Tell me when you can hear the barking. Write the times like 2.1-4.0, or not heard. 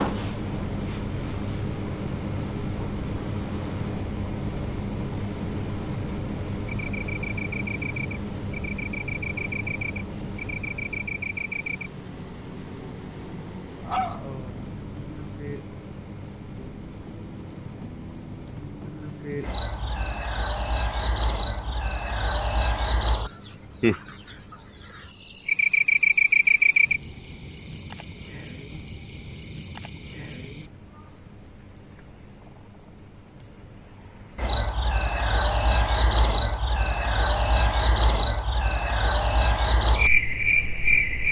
13.8-14.7.